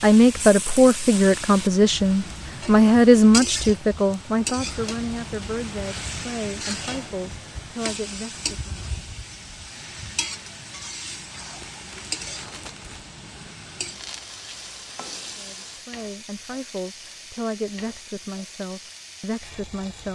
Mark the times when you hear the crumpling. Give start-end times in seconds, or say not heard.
11.6-13.1.